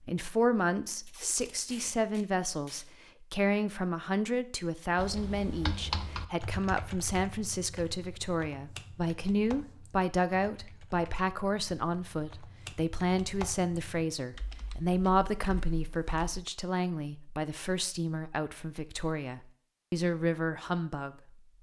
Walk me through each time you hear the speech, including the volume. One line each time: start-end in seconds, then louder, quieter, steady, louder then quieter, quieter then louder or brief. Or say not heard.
0.1-21.1 steady.